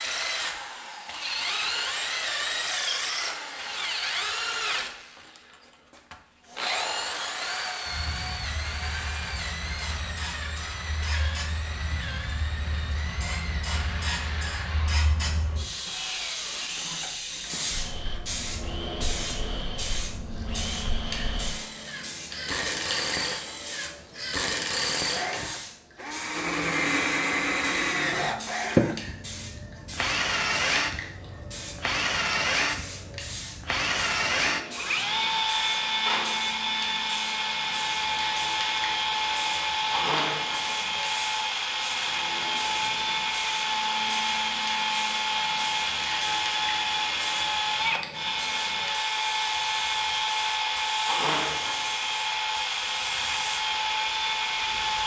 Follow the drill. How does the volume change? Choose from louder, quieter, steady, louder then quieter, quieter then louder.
quieter then louder.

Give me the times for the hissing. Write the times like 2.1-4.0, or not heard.
6.4-55.0.